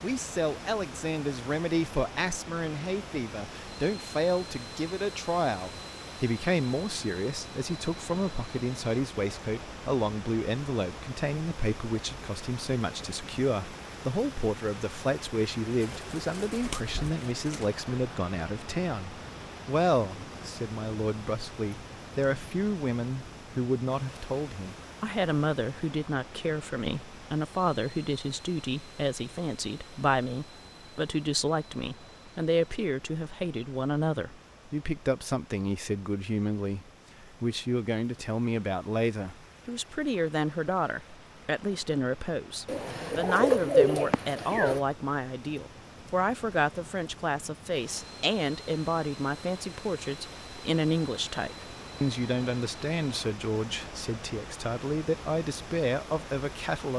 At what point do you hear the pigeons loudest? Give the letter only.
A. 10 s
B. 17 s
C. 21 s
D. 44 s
D.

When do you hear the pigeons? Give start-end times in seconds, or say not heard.
15.8-17.6, 42.6-44.9.